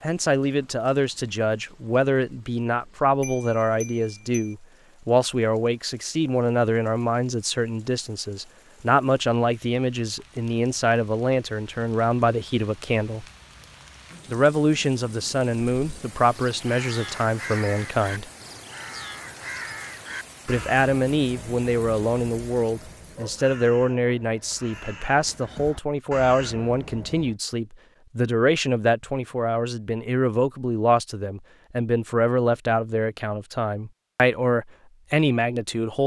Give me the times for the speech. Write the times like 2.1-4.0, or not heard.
0.0-13.2, 14.2-18.2, 20.4-36.0.